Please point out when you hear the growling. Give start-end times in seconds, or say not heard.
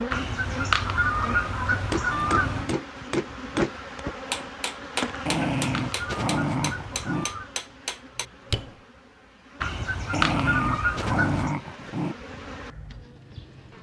2.1-2.9, 5.2-7.2, 10.1-12.2.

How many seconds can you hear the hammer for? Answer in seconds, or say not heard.
7 s.